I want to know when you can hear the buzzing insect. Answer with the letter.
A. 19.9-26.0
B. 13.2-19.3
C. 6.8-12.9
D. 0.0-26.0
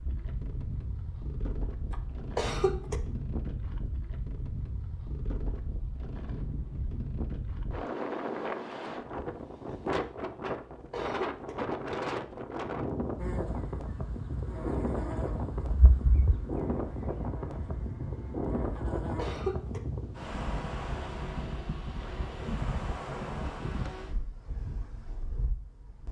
B.